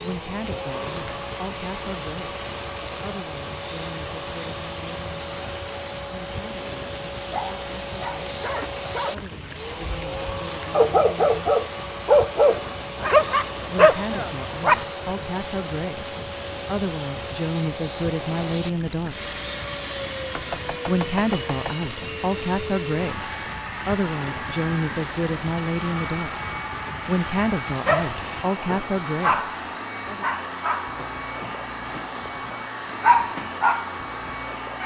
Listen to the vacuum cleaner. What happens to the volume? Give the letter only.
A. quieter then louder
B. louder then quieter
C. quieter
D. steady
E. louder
D.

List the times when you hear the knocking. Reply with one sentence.
You can hear the knocking from 20.3 to 21.8 s.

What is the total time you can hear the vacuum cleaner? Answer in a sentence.
You can hear the vacuum cleaner for 35 seconds altogether.